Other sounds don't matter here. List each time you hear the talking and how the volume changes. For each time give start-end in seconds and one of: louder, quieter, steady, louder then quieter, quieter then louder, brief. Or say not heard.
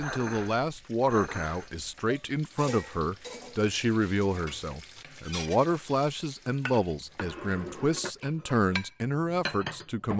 0.0-10.1 steady.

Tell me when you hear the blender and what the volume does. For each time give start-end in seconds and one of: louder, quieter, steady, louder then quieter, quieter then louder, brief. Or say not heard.
not heard.